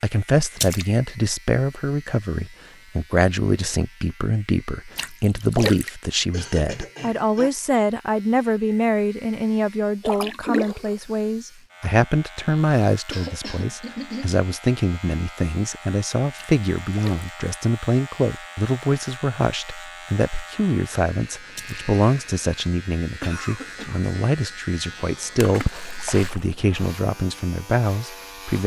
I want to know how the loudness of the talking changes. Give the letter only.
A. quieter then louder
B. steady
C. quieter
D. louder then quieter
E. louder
B.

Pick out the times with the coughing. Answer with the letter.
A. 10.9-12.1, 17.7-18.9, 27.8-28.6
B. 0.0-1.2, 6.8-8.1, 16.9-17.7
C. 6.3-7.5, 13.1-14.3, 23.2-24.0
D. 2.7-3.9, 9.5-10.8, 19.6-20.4
C.